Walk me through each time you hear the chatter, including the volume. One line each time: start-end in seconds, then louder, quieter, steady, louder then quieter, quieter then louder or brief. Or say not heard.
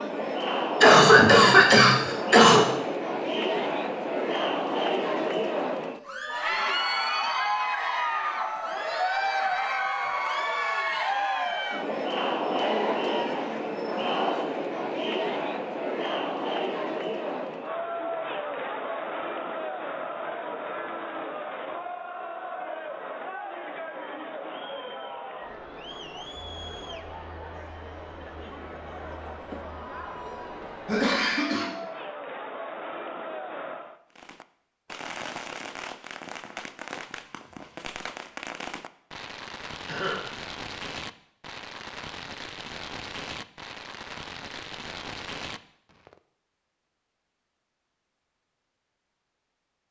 0.0-34.0 quieter.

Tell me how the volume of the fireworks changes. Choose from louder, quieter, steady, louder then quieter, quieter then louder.
steady.